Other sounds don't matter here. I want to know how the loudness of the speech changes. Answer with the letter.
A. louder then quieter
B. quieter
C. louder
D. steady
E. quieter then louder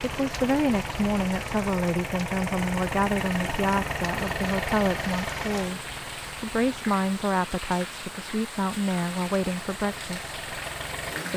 D.